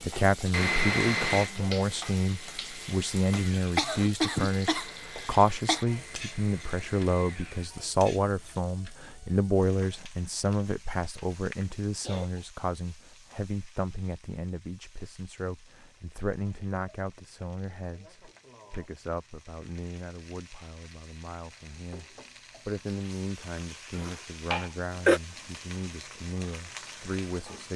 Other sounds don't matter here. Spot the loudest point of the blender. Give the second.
1 s.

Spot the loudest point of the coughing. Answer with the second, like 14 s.
25 s.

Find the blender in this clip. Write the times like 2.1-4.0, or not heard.
0.0-7.7.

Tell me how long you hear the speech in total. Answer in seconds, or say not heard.
28 s.